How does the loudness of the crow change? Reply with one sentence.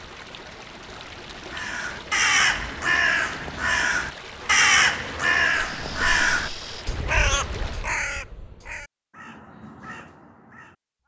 The loudness of the crow goes down.